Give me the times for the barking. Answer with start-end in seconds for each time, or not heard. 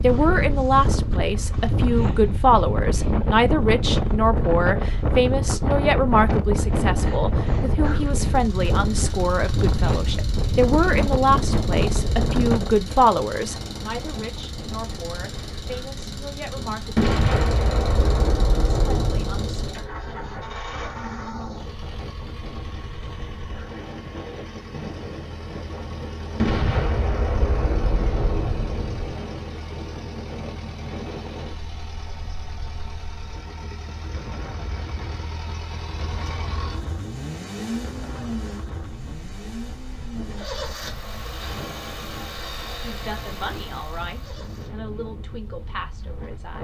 not heard.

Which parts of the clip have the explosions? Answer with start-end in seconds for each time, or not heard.
16.9-19.7, 26.4-29.1.